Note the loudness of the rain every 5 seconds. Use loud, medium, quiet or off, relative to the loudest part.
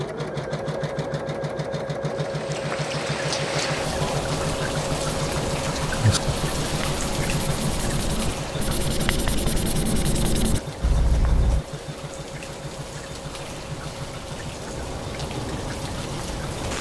loud, loud, medium, loud.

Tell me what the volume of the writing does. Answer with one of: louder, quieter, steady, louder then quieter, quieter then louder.
louder.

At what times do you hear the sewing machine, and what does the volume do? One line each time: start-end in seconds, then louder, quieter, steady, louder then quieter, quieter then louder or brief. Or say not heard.
0.0-16.5 quieter.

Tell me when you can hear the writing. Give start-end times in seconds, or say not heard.
5.9-11.6.